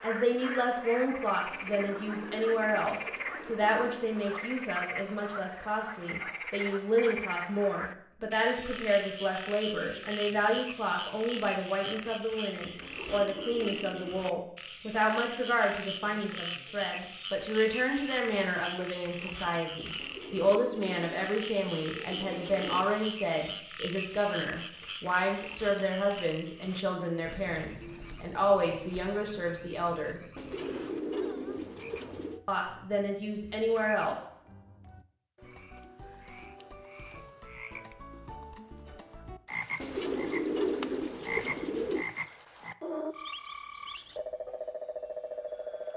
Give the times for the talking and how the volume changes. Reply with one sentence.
The talking can be heard from 0.0 to 30.2 s, at a steady volume; and briefly from 32.5 to 34.1 s.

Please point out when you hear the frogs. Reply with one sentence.
You can hear the frogs from 0.0 to 45.9 s.